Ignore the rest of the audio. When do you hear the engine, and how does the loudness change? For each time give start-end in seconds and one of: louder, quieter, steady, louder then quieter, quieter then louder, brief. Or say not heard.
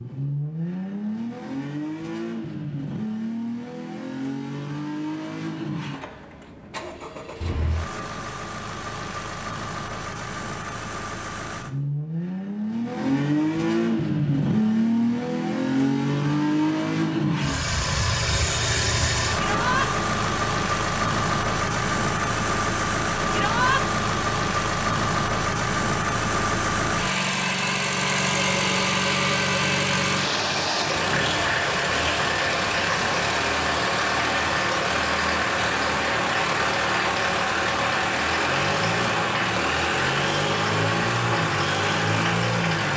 0.0-42.9 louder.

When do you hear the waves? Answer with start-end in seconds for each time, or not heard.
not heard.